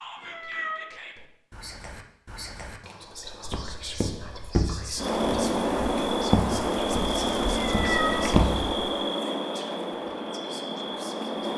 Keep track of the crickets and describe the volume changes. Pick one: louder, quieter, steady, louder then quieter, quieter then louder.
quieter.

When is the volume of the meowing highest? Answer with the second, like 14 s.
8 s.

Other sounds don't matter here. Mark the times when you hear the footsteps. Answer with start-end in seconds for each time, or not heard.
3.3-8.8.